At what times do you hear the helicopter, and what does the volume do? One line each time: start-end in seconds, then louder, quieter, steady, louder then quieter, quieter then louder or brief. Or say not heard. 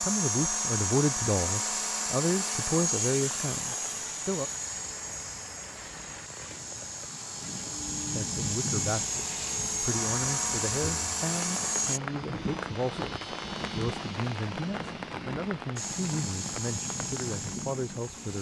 0.0-12.0 quieter then louder
15.8-18.3 brief.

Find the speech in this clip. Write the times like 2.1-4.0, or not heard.
0.0-4.5, 8.2-18.3.